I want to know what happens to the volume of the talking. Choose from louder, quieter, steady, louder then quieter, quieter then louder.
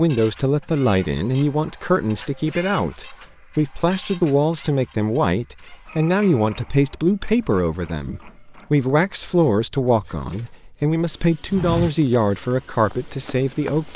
steady.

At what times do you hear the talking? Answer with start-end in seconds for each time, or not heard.
0.0-13.9.